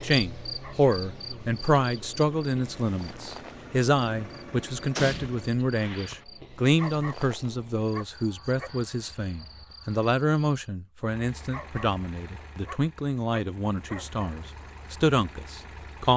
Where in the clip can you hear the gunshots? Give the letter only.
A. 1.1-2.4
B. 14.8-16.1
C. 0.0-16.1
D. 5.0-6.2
D.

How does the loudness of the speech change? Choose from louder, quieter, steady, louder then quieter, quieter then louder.
steady.